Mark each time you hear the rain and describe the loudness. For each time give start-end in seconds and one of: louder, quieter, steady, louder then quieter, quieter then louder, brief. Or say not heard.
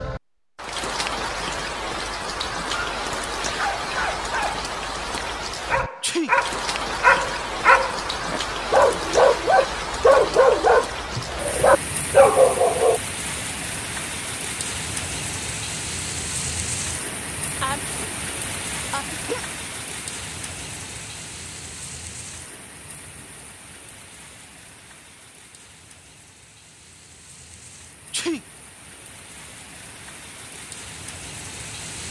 0.0-32.0 quieter.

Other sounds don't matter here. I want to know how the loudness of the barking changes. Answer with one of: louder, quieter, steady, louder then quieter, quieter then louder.
louder.